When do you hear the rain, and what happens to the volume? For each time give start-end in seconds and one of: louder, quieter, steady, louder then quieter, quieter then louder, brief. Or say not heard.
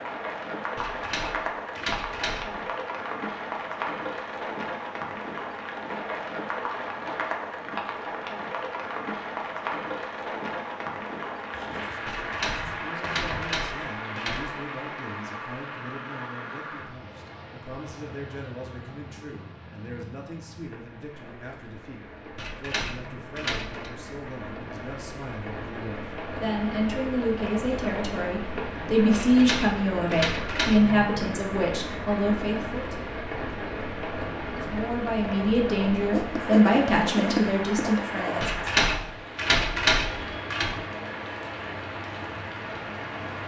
0.0-43.4 quieter then louder.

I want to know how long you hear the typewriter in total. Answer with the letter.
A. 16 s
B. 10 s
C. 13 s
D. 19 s
B.